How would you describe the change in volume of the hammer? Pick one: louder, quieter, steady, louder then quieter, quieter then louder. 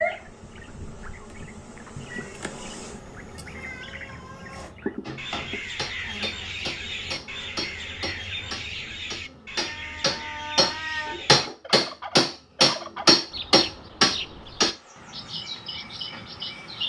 louder.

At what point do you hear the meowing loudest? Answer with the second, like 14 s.
11 s.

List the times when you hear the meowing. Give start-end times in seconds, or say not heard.
1.9-4.7, 9.6-11.2.